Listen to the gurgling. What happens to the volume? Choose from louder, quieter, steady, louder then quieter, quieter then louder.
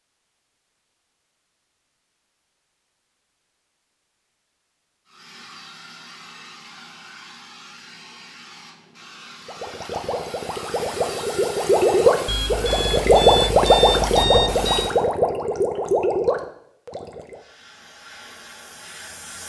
louder then quieter.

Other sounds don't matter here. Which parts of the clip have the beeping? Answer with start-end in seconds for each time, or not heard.
12.2-14.9.